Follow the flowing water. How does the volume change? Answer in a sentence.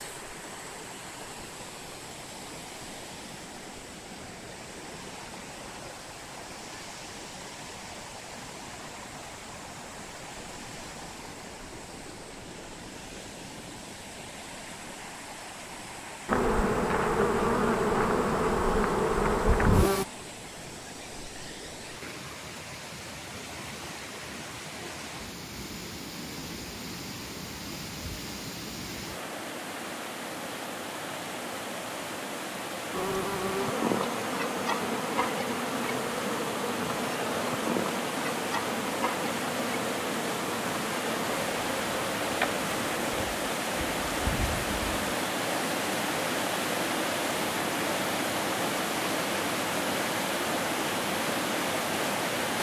The loudness of the flowing water goes up.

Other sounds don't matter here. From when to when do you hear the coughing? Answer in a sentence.
You can't hear the coughing here.